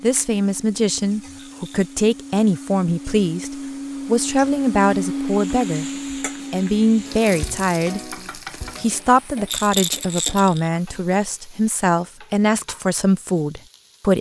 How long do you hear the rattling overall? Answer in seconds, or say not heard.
2 s.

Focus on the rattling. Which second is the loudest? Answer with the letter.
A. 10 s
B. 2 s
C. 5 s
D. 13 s
A.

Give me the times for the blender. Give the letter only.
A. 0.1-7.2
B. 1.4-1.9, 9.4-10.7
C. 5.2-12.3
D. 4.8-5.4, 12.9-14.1
A.